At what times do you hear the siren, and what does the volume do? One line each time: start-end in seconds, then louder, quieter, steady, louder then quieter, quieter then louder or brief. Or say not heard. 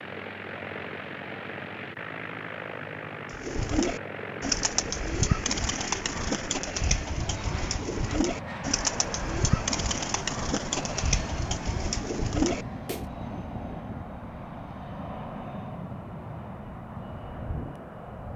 not heard.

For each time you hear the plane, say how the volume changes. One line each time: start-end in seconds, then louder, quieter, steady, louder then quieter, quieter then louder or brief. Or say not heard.
0.0-18.3 steady.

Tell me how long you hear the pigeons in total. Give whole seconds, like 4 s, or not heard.
10 s.